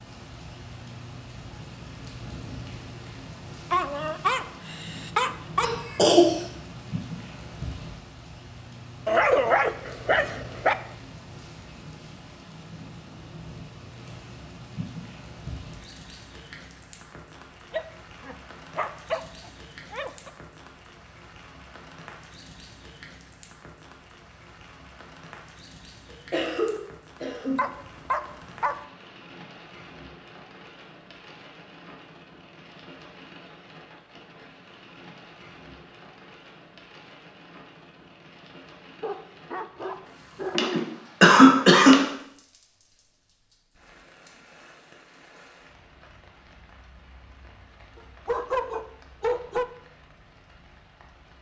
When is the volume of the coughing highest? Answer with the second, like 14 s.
41 s.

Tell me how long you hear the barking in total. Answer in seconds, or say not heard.
11 s.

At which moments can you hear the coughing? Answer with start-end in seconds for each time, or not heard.
5.6-6.3, 26.3-27.7, 40.5-42.0.